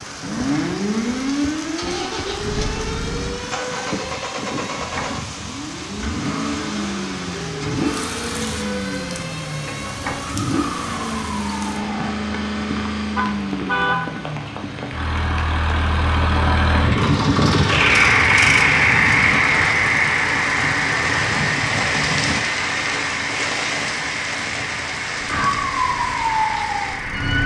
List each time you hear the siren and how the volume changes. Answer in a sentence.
You can hear the siren from 0.0 to 12.2 s, getting quieter; and briefly from 25.1 to 27.4 s.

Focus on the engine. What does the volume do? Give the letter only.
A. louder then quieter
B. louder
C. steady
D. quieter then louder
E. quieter
A.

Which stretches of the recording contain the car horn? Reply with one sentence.
The car horn can be heard from 13.2 to 14.2 s.